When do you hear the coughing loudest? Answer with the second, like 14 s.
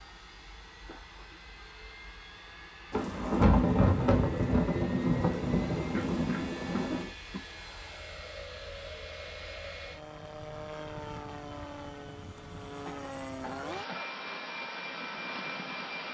7 s.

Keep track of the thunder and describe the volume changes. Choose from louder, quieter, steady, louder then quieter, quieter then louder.
quieter.